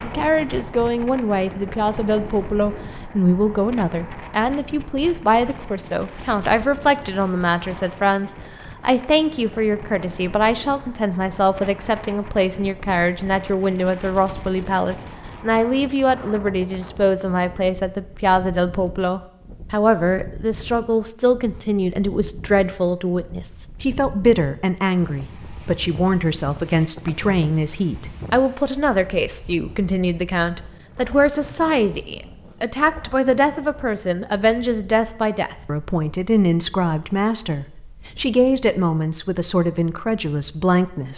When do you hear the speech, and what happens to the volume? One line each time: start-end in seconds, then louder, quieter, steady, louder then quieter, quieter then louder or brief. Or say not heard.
0.0-41.1 steady.